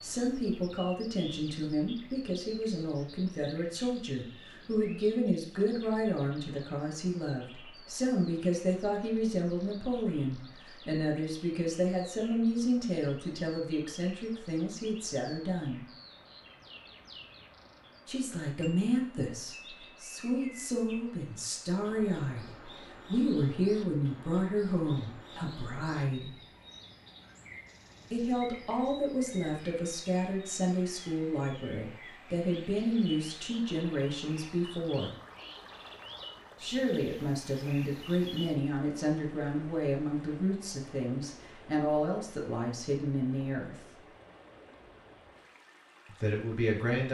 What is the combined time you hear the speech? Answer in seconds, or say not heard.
39 s.